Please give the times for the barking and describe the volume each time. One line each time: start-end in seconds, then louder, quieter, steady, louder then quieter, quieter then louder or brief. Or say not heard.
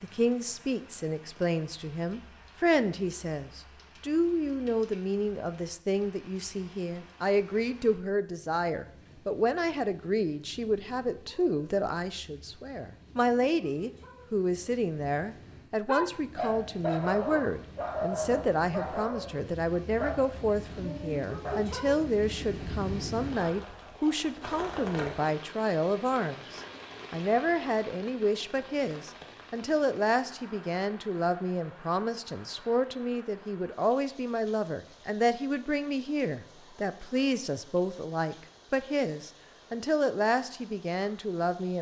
15.8-21.8 quieter.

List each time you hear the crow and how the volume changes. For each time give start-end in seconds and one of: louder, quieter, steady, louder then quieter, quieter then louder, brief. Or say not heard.
not heard.